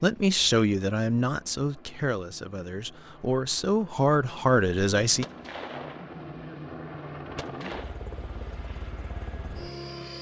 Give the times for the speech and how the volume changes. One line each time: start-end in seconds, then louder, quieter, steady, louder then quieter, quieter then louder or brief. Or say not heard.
0.0-5.2 quieter then louder.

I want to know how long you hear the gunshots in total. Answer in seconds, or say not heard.
2 s.